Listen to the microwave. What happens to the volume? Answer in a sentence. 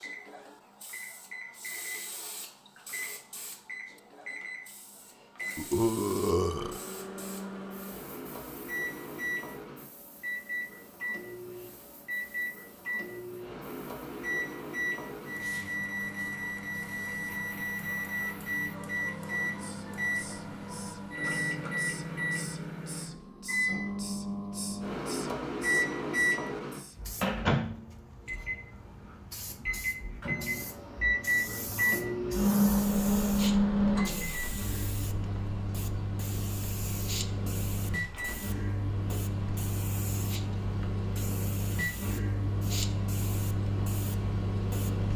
The volume of the microwave goes up, then down.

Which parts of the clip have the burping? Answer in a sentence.
You can hear the burping from 5.5 to 6.8 s.